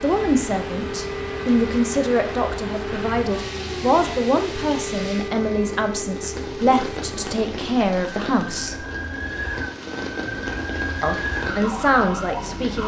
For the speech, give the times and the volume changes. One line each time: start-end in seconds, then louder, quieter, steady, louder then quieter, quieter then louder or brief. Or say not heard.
0.0-8.8 steady
11.0-12.8 brief.